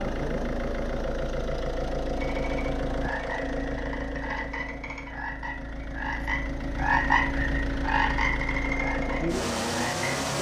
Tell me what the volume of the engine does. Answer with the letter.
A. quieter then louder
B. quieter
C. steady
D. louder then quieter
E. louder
A.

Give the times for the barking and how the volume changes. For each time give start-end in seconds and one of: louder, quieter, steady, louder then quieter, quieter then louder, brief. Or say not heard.
not heard.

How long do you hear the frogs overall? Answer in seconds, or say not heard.
8 s.